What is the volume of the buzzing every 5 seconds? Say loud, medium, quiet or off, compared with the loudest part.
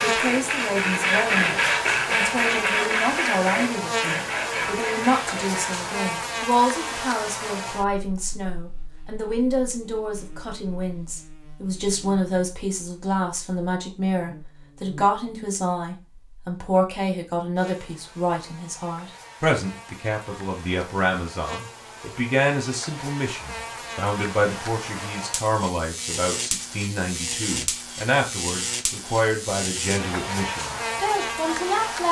loud, loud, quiet, quiet, medium, loud, loud.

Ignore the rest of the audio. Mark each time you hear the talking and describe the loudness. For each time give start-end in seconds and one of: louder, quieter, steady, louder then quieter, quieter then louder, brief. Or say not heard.
0.0-32.0 steady.